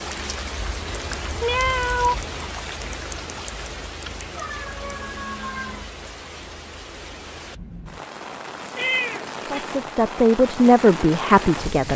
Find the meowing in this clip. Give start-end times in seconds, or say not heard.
0.6-2.3, 4.0-5.9, 8.8-9.8.